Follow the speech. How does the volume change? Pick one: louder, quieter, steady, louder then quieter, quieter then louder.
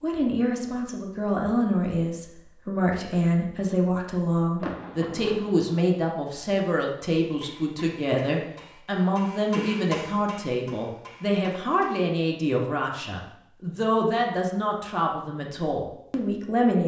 steady.